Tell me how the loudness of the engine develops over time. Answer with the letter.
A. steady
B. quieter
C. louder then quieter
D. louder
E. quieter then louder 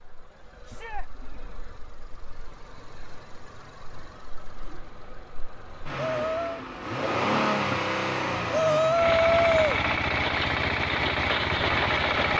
D.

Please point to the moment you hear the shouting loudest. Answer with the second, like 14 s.
9 s.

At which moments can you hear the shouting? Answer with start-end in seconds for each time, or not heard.
0.6-1.1, 6.0-6.7, 8.5-9.8.